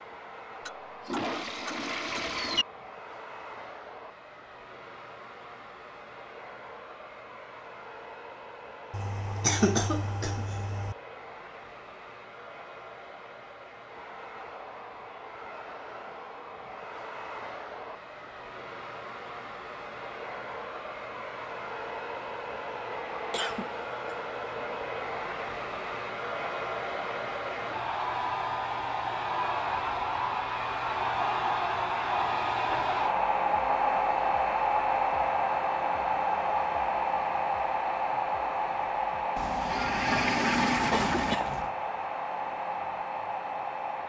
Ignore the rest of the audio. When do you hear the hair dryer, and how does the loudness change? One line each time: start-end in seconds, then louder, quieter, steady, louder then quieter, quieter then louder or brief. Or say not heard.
0.0-44.0 louder.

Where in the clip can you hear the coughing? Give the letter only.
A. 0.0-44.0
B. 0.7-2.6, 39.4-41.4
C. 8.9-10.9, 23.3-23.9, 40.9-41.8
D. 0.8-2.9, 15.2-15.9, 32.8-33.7
C.